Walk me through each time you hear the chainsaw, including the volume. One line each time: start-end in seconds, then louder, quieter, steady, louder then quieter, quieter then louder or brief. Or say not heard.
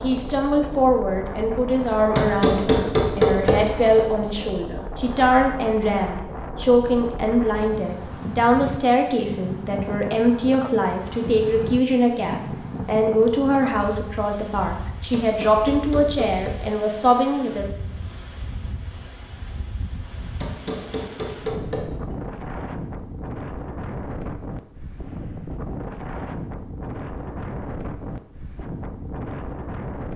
not heard.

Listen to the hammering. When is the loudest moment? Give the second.
3 s.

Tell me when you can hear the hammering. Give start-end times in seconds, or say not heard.
2.1-4.0, 15.1-16.6, 20.4-22.1.